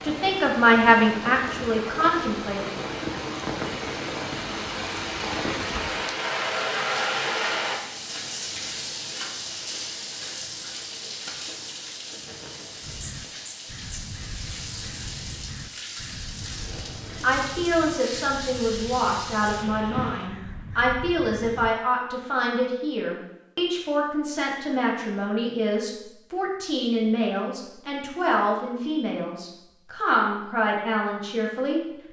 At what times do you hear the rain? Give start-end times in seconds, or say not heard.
0.0-20.3.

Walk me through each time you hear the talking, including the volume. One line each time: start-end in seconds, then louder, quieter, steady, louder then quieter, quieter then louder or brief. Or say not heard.
0.0-2.6 brief
17.2-31.8 steady.